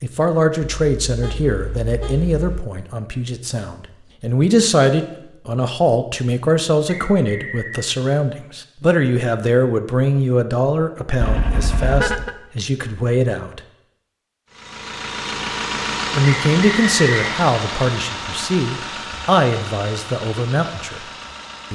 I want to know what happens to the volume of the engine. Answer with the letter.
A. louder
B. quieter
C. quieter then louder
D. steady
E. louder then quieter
B.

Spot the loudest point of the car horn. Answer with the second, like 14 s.
12 s.